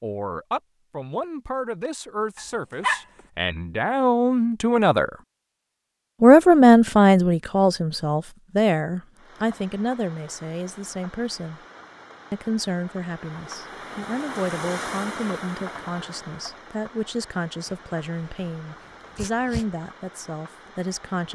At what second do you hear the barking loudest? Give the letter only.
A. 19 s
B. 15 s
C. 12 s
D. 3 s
D.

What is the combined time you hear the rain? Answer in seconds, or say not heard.
12 s.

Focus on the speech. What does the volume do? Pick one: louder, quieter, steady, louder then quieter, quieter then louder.
louder then quieter.